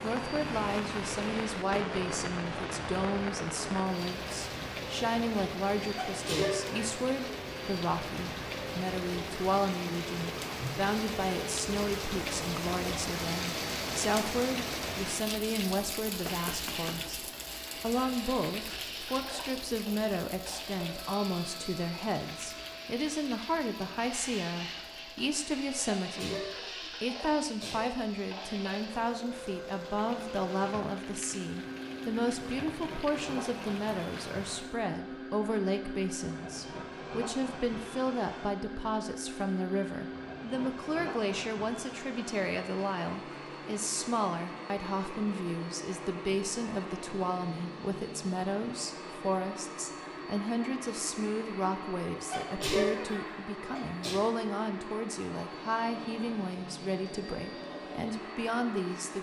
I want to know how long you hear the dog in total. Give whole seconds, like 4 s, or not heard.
not heard.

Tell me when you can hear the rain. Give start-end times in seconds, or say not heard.
0.0-34.6.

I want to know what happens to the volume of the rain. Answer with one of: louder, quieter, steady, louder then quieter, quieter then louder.
quieter.